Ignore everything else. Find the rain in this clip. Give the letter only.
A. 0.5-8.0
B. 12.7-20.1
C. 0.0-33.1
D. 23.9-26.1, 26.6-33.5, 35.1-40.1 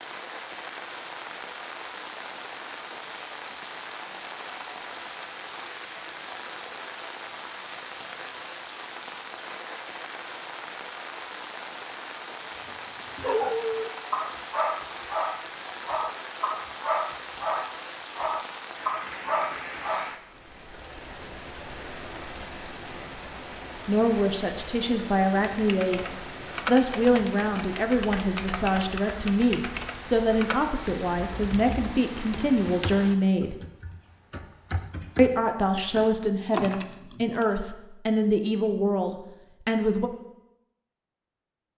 C.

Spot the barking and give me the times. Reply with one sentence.
You can hear the barking from 12.7 to 20.1 s.